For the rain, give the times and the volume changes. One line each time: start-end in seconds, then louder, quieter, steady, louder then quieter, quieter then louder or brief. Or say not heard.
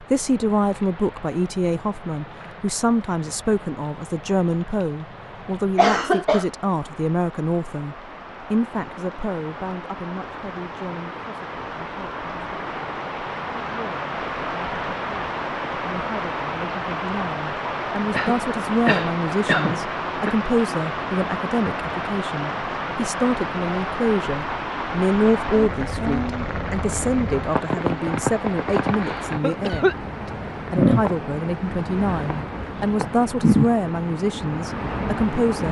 0.0-35.6 louder.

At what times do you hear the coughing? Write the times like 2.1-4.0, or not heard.
5.8-6.5, 18.1-20.3, 29.0-29.9.